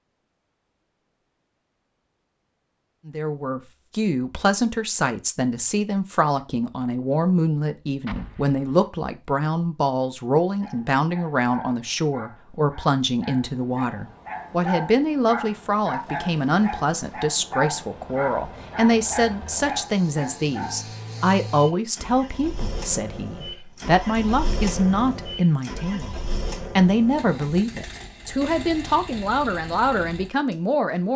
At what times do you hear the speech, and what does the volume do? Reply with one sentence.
The speech can be heard from 3.0 to 31.1 s, at a steady volume.